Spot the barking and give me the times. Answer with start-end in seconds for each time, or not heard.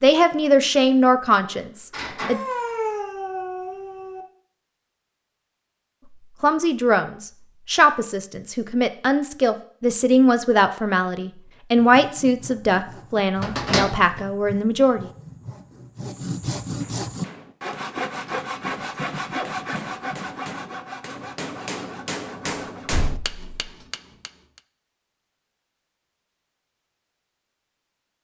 2.2-4.2.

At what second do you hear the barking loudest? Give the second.
3 s.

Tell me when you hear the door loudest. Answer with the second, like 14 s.
14 s.